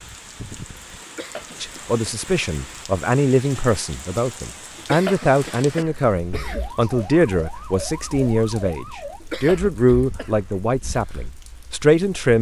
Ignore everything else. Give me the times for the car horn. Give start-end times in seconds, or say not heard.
not heard.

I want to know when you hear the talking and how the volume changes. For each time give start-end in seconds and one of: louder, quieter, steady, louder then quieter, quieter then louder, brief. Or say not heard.
1.6-12.3 steady.